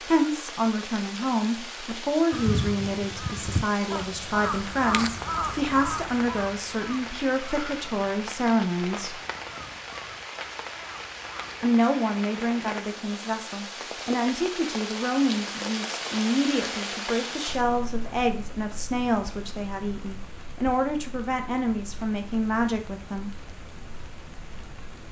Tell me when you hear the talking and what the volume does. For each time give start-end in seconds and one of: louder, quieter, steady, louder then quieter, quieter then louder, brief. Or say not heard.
0.1-9.2 steady
11.6-23.3 steady.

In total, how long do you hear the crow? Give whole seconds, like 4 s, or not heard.
9 s.